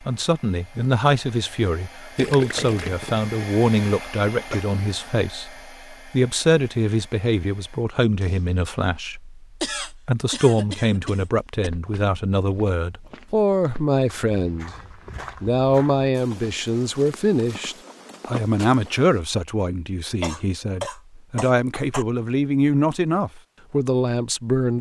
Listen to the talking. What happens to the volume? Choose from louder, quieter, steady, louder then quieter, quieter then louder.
steady.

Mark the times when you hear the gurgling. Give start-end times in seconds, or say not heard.
2.1-3.5.